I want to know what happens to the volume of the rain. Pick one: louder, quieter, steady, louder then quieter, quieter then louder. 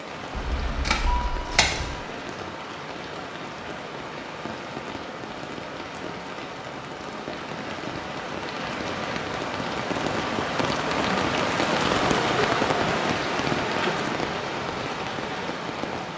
louder.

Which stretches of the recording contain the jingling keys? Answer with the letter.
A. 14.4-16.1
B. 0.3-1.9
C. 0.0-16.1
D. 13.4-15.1
B.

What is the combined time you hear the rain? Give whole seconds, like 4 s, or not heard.
16 s.